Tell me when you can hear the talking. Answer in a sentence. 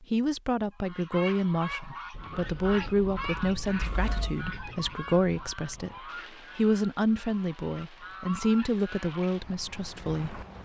You can hear the talking from 0.0 to 6.0 s and from 6.5 to 10.4 s.